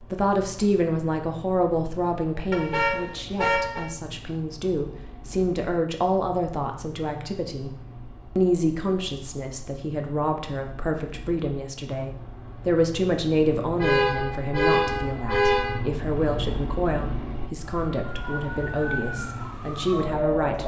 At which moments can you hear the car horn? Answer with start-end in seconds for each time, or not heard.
2.5-3.9, 13.8-15.8.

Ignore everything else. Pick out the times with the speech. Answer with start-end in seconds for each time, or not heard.
0.1-7.8, 8.3-20.6.